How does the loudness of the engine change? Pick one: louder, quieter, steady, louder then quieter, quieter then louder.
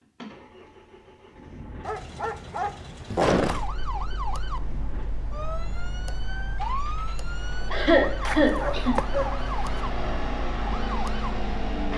louder.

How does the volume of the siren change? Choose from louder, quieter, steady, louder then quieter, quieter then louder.
steady.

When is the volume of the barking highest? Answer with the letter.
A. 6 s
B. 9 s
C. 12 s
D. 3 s
D.